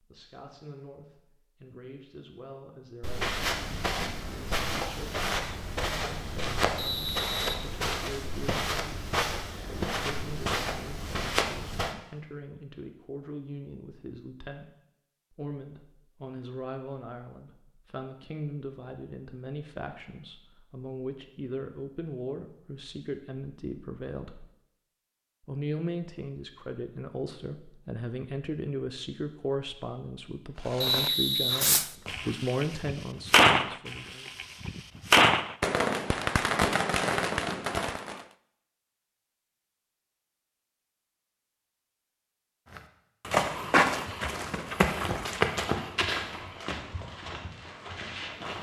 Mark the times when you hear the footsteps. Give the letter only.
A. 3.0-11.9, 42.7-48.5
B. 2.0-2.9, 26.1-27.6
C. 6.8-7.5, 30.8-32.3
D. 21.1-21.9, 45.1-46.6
A.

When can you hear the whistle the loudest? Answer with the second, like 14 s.
31 s.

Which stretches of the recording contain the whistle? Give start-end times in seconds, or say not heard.
6.8-7.5, 30.8-32.3.